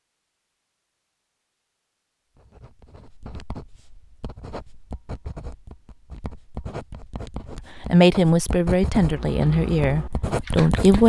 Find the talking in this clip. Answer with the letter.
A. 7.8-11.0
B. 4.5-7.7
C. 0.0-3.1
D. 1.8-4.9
A.